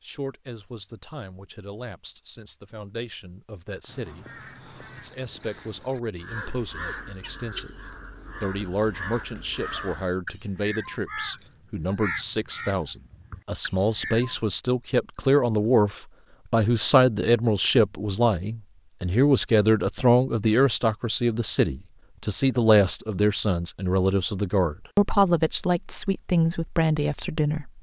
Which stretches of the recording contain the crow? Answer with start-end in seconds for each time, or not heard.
3.9-14.4.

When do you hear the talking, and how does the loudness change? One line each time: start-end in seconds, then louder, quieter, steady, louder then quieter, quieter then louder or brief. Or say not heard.
0.0-27.7 louder.